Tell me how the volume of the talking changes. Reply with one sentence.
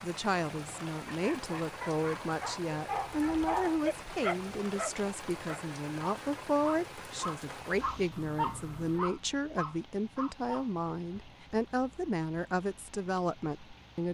The volume of the talking stays about the same.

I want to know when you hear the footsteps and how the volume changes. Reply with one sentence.
The footsteps can't be heard in this clip.